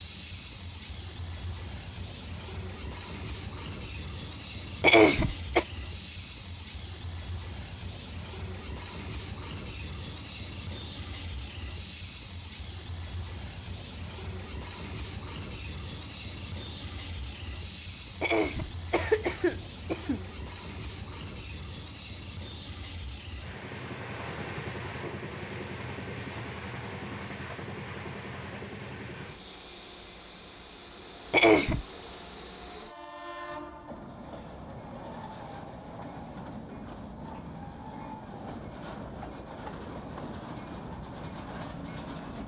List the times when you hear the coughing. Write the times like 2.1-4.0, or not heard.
4.8-5.7, 18.2-20.2, 31.3-31.9.